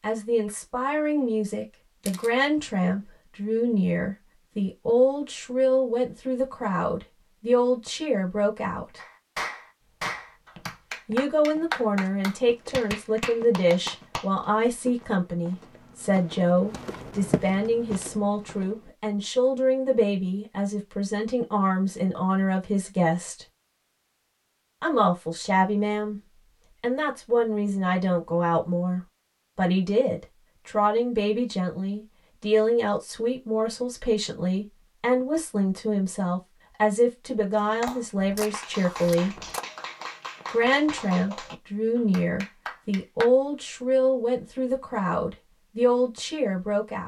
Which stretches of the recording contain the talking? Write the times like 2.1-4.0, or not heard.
0.0-9.0, 11.1-23.4, 24.8-26.2, 26.8-39.5, 40.5-47.0.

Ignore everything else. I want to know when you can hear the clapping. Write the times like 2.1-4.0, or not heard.
8.9-14.3, 37.5-43.3.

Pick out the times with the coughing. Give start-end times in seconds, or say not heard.
not heard.